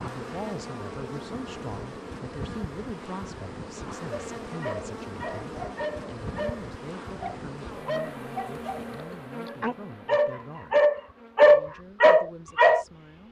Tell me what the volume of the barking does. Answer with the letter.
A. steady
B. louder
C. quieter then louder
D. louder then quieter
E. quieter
B.